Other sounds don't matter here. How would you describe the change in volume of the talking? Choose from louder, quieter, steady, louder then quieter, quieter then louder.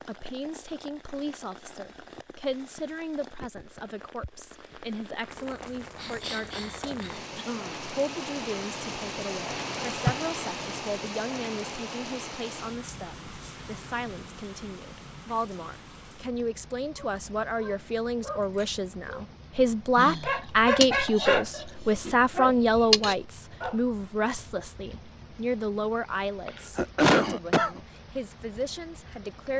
louder then quieter.